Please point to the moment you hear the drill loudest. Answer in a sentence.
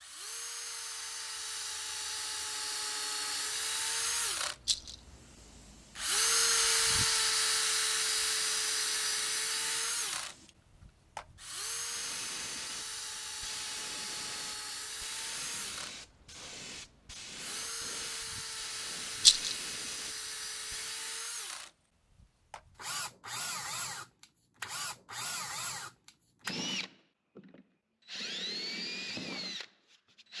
The volume of the drill peaks at 7 seconds.